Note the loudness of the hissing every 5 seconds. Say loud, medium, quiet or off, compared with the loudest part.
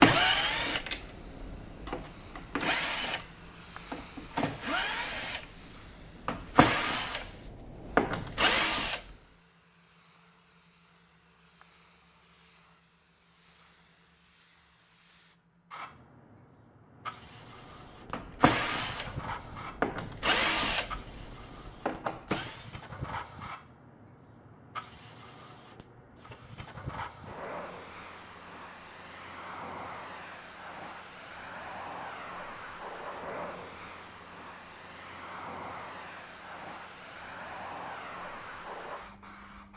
medium, quiet, quiet, loud, loud, loud, loud, loud.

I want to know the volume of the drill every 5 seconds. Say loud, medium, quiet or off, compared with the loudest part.
loud, loud, off, loud, loud, off, off, off.